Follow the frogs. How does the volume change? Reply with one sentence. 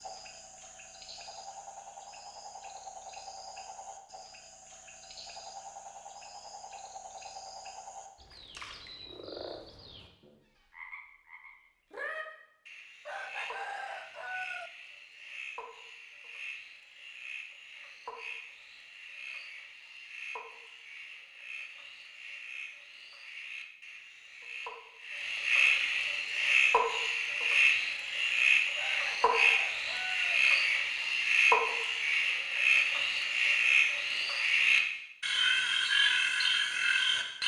The loudness of the frogs goes up.